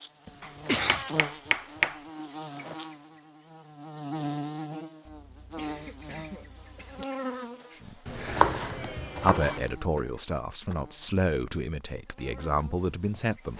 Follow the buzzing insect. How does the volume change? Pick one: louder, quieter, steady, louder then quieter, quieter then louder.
quieter.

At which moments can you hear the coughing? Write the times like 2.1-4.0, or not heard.
0.2-1.1, 5.0-7.0, 9.9-10.8.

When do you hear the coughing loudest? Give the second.
1 s.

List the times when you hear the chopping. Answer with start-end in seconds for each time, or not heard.
0.4-2.0, 8.1-9.6.